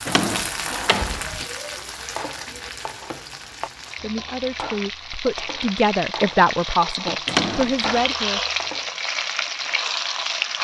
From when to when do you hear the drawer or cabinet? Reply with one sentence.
You can hear the drawer or cabinet from 0.1 to 1.4 s and from 7.2 to 8.2 s.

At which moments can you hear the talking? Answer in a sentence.
The talking can be heard from 4.0 to 8.4 s.